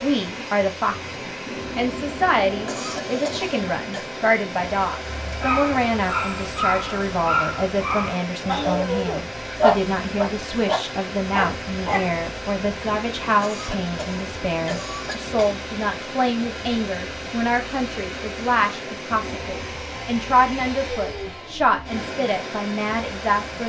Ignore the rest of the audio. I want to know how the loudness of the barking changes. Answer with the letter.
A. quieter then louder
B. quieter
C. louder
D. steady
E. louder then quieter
E.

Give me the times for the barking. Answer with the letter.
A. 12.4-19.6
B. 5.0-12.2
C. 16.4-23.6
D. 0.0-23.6
B.